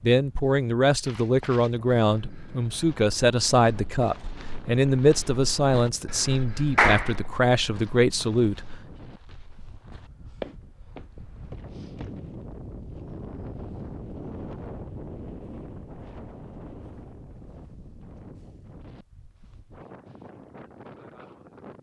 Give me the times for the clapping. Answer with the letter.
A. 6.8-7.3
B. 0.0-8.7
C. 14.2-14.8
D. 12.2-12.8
A.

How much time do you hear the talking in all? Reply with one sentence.
The talking can be heard for 9 seconds in total.